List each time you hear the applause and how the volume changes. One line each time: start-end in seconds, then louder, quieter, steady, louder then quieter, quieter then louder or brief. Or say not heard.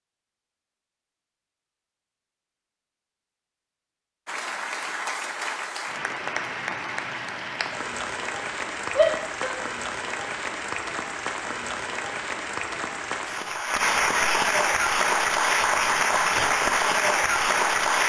4.2-18.0 louder.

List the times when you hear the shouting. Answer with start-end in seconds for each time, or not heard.
8.9-9.6.